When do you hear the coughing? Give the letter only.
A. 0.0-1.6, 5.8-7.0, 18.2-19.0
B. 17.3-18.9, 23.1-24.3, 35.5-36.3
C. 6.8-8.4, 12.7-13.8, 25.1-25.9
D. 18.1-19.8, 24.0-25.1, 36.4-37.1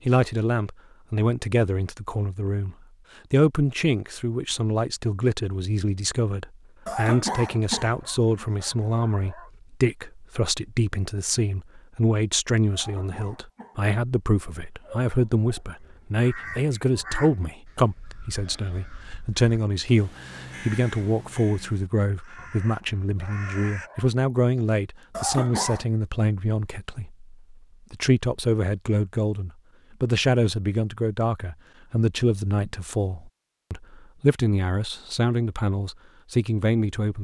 C.